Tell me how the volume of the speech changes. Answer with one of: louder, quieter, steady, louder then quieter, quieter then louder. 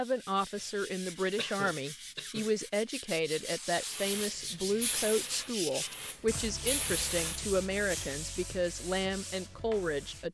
steady.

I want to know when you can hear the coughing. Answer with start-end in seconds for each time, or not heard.
1.4-2.5.